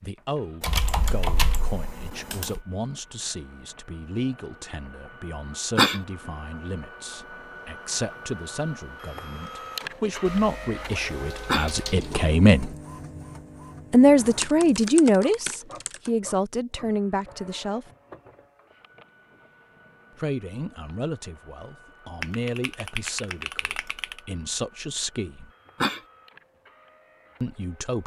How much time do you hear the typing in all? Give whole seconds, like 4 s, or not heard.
8 s.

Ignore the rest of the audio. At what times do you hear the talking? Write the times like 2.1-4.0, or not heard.
0.0-12.8, 13.9-17.9, 20.1-25.5, 27.4-28.0.